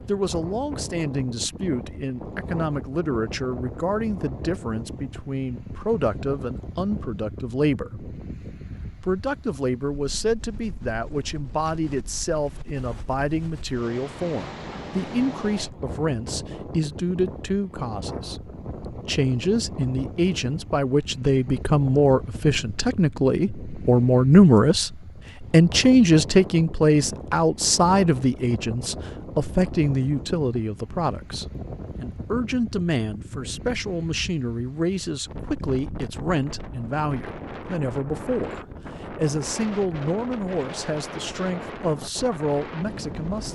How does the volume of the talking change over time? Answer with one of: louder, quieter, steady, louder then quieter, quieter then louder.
louder then quieter.